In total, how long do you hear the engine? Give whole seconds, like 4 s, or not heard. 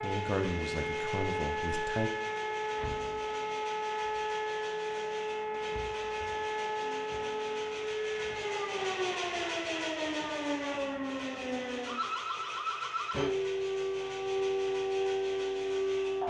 16 s.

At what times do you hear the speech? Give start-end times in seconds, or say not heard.
0.0-2.1.